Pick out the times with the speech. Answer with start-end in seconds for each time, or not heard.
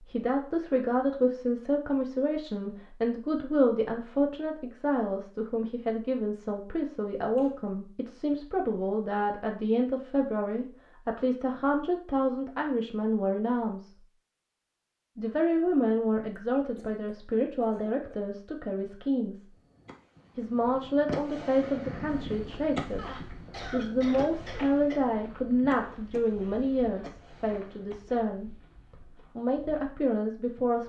0.0-13.9, 15.2-19.4, 20.4-30.8.